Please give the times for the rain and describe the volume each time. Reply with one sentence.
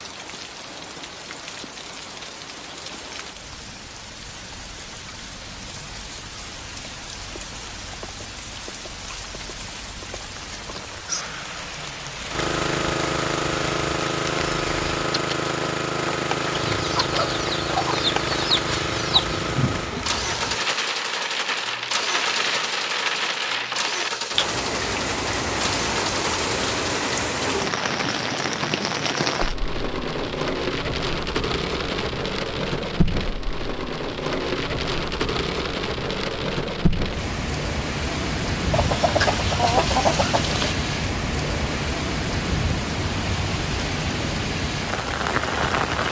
You can hear the rain from 0.0 to 46.0 s, getting louder.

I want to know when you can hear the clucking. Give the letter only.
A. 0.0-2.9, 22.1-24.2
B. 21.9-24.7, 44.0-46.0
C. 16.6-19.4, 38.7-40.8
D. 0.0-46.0
C.